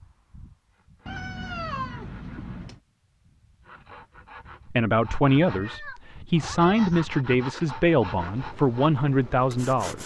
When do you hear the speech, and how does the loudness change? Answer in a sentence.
You can hear the speech from 4.7 to 10.0 s, at a steady volume.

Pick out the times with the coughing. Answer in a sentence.
The coughing can't be heard in this clip.